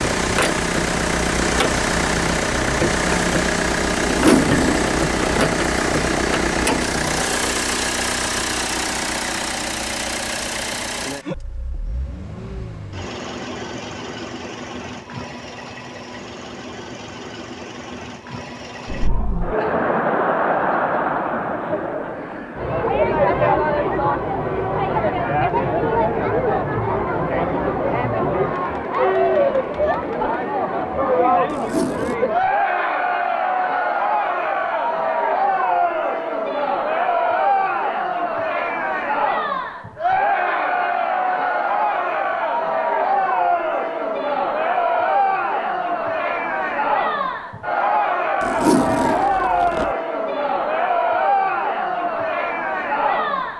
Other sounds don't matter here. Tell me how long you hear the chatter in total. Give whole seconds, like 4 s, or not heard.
35 s.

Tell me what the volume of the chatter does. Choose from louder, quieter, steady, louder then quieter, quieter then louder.
steady.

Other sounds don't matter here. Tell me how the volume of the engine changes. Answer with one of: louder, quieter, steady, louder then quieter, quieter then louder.
quieter.